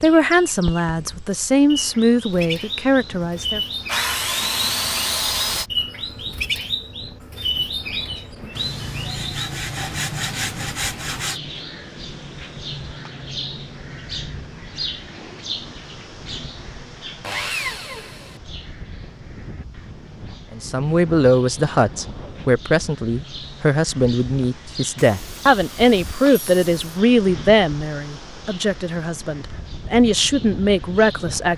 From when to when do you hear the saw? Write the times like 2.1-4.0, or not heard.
3.9-5.7, 8.6-11.4, 17.2-18.4, 24.9-26.9.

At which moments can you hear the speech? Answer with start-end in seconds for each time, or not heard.
0.0-3.6, 20.5-31.5.